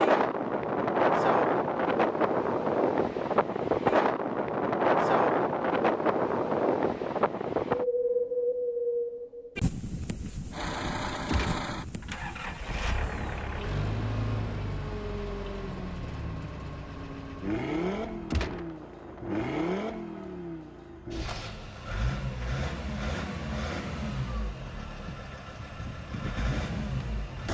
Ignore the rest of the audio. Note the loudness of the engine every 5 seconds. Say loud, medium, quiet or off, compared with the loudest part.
off, off, loud, loud, loud, loud.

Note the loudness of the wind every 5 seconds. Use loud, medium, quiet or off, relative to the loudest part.
loud, loud, quiet, quiet, off, off.